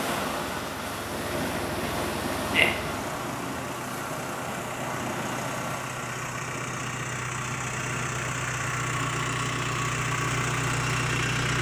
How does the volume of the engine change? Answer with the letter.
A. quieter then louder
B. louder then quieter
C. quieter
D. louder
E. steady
D.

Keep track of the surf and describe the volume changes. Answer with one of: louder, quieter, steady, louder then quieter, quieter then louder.
quieter.